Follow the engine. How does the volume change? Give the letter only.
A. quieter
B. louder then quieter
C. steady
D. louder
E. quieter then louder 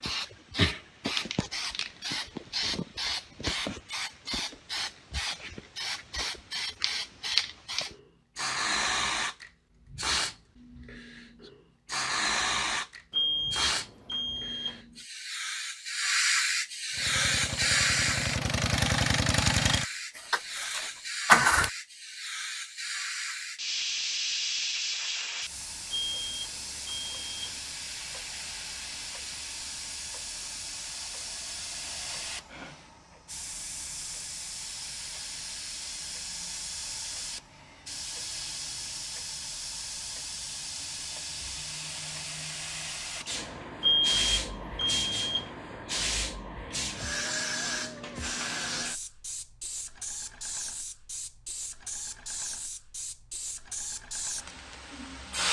B.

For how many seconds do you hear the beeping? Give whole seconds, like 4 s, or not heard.
5 s.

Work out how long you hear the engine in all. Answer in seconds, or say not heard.
5 s.